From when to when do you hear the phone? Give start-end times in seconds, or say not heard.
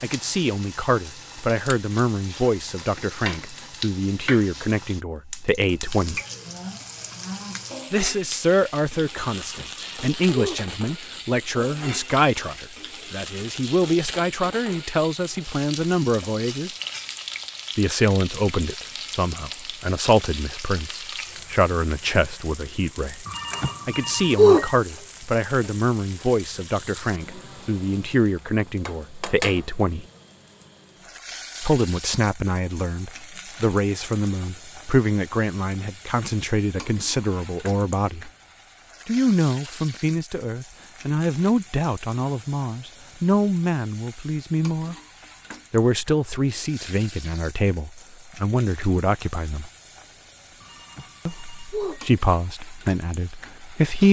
9.4-10.7, 23.2-24.7, 50.6-52.0.